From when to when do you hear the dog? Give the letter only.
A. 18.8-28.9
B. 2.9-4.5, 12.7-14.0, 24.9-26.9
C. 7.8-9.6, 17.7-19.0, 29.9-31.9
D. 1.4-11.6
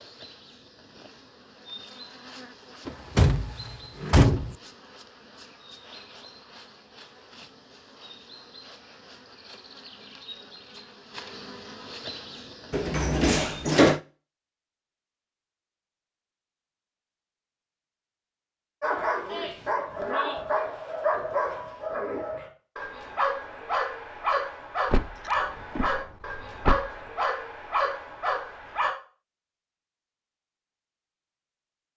A.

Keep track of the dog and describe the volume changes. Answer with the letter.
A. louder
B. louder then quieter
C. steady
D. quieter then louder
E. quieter
C.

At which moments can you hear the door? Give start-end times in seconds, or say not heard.
2.9-4.5, 12.7-14.0, 24.9-26.9.